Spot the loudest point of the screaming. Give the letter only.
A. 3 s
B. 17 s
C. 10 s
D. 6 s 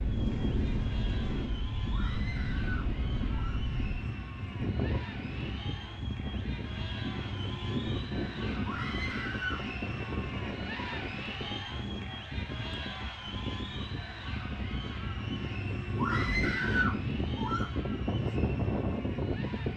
B.